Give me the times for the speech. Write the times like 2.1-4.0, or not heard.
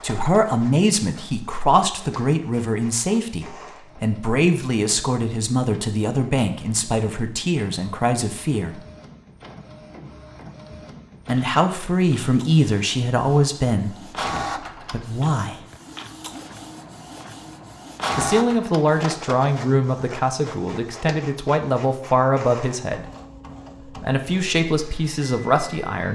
0.0-8.8, 11.2-13.9, 14.9-15.6, 18.1-23.1, 24.0-26.1.